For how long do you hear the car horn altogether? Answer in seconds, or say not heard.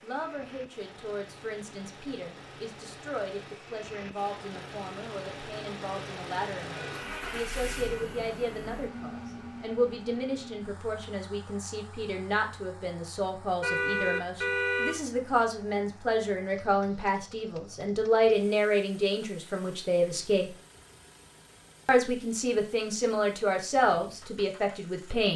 3 s.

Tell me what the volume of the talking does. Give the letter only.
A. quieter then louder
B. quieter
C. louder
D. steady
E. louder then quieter
C.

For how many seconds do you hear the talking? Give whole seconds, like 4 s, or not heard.
24 s.